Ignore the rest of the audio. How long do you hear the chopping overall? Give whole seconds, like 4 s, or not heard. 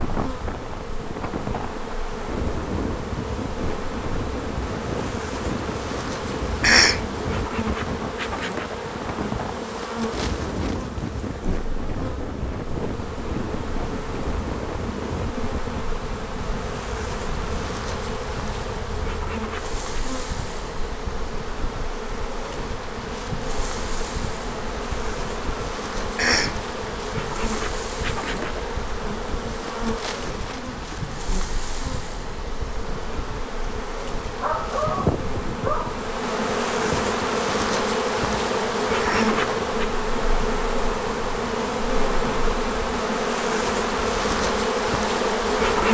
not heard.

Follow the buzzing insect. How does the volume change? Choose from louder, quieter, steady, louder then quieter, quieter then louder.
louder.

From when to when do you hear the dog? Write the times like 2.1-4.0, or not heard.
34.4-36.0.